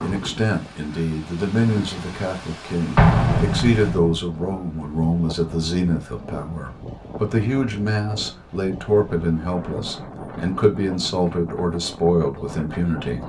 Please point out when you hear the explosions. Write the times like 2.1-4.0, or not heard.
3.0-4.2.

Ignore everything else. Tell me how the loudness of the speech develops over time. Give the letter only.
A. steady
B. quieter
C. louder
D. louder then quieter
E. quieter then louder
A.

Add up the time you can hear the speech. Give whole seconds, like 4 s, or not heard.
13 s.